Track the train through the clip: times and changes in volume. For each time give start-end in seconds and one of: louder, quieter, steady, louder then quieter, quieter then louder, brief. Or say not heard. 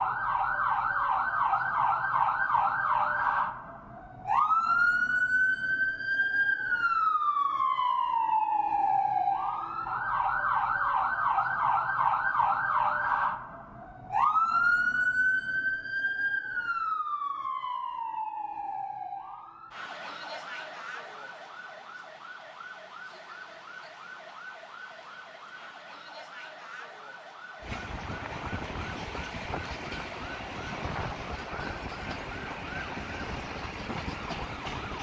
27.6-34.9 steady.